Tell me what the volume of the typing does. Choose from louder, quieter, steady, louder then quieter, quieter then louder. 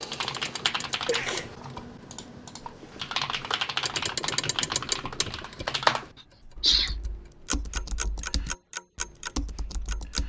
louder then quieter.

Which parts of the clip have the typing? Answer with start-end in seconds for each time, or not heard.
0.0-10.2.